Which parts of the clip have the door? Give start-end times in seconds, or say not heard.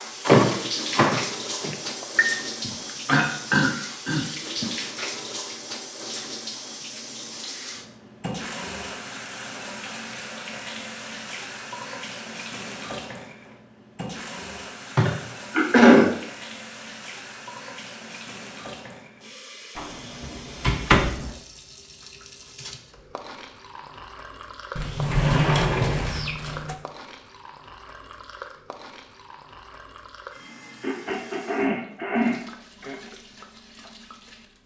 0.2-2.2, 19.8-21.3, 24.8-26.8.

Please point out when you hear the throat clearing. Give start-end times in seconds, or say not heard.
2.6-4.7, 14.9-16.1, 30.8-33.0.